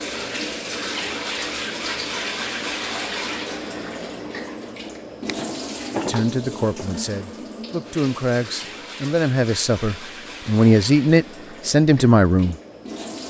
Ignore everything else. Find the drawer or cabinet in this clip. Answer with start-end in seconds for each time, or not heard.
5.0-7.3.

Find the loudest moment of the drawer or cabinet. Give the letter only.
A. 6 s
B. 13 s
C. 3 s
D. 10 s
A.